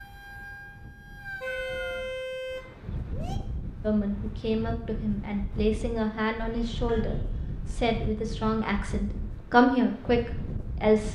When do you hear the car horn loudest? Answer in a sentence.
The volume of the car horn peaks at 2 seconds.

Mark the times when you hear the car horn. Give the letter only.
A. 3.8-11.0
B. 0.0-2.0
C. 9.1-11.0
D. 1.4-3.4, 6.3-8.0
D.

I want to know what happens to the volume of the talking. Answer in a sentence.
The volume of the talking goes up.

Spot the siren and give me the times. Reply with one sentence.
The siren can be heard from 0.0 to 2.0 s.